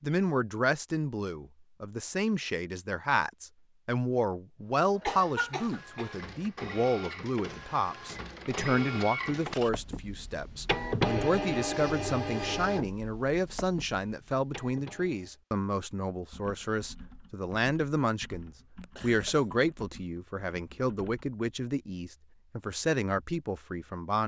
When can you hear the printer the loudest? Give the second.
11 s.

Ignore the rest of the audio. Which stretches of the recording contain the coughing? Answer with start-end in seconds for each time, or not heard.
5.0-6.2, 18.8-19.5.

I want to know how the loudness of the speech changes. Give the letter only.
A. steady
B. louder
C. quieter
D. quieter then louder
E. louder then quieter
A.